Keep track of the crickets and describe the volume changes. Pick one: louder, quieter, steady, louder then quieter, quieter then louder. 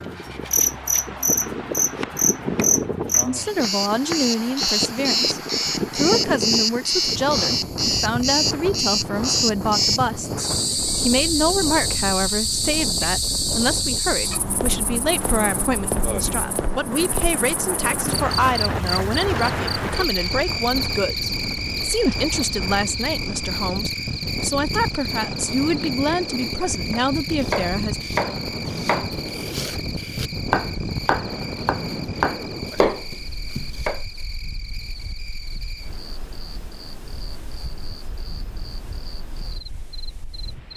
quieter.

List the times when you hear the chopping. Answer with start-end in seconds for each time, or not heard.
0.0-4.8, 26.9-34.0.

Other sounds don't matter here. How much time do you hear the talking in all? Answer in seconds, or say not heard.
25 s.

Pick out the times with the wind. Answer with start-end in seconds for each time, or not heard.
0.0-40.7.